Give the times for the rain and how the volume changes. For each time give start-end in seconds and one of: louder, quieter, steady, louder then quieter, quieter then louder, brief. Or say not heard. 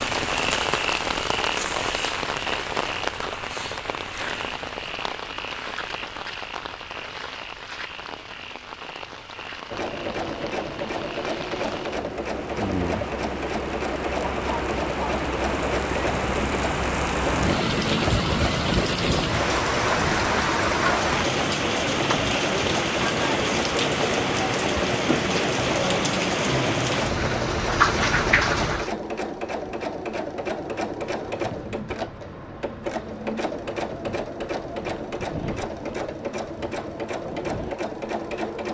0.0-28.9 quieter then louder.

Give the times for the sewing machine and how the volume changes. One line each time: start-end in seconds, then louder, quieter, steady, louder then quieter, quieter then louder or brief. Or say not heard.
9.7-38.6 steady.